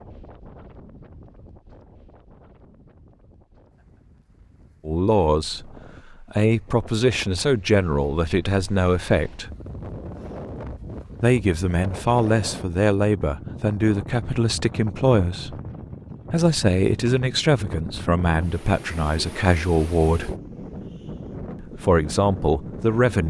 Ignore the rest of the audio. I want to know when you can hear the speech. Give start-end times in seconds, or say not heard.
4.8-9.5, 11.2-15.6, 16.3-20.3, 21.6-23.2.